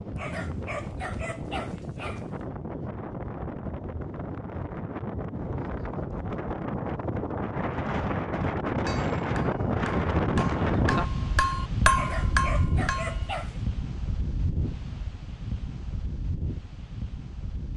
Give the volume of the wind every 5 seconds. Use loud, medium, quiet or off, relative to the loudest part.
medium, loud, loud, medium.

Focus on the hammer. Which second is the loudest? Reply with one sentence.
The loudest moment of the hammer is at 12 seconds.